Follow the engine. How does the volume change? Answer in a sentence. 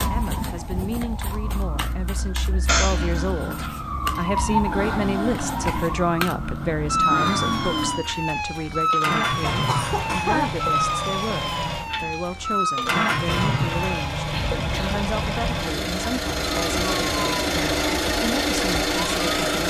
The volume of the engine goes up.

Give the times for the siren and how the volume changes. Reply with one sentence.
You can hear the siren from 0.0 to 19.4 s, getting louder then quieter.